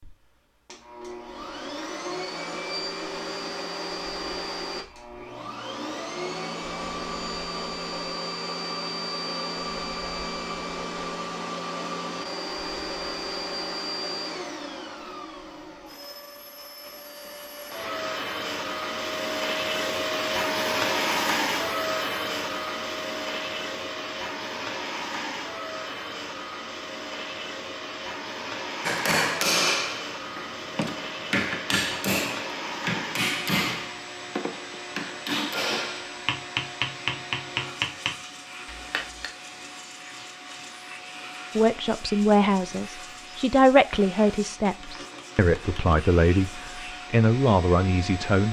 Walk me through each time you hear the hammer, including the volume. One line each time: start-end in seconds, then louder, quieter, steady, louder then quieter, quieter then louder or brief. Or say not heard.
28.9-39.3 steady.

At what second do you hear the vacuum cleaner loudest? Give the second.
21 s.